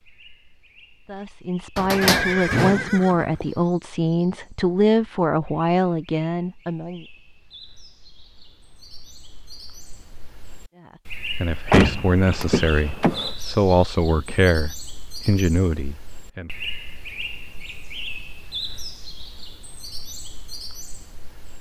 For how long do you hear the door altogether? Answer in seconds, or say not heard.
3 s.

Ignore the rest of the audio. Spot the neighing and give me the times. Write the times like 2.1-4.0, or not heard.
2.0-3.4.